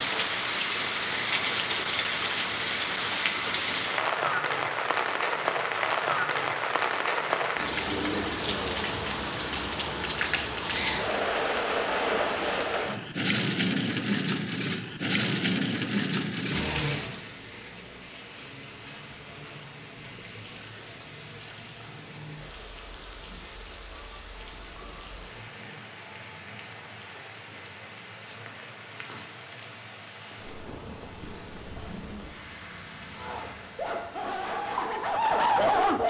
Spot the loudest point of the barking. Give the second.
36 s.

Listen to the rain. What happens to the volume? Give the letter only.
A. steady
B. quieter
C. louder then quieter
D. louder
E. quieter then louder
B.